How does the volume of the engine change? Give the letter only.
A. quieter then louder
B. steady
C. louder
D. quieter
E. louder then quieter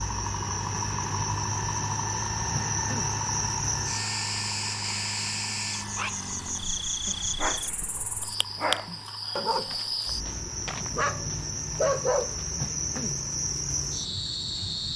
D.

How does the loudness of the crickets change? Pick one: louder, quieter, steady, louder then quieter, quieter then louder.
steady.